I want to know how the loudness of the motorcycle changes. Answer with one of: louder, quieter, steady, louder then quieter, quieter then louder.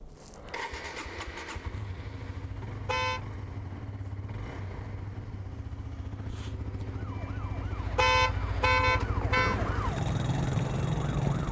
louder.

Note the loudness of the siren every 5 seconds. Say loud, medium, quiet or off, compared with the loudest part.
off, medium, loud.